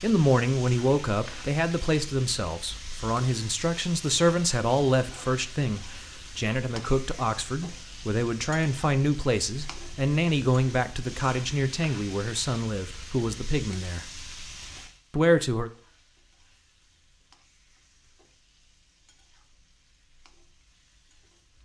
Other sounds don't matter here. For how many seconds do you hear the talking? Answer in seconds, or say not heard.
15 s.